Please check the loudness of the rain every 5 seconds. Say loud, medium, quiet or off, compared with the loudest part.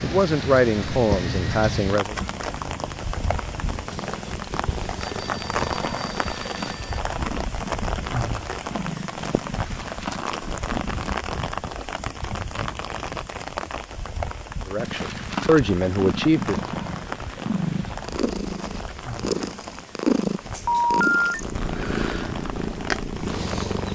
loud, loud, loud, medium, medium.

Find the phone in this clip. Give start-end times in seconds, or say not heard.
5.0-7.0, 20.6-21.4.